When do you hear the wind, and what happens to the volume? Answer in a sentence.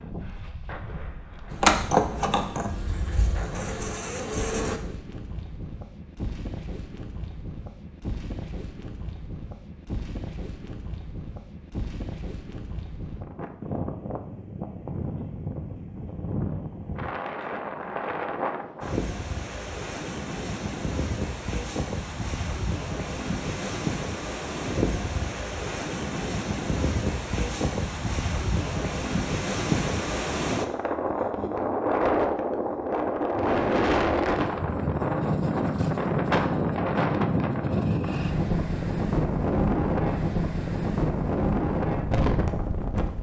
You can hear the wind from 0.0 to 43.1 s, getting louder.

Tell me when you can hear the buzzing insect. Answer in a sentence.
The buzzing insect can be heard from 1.5 to 4.8 s.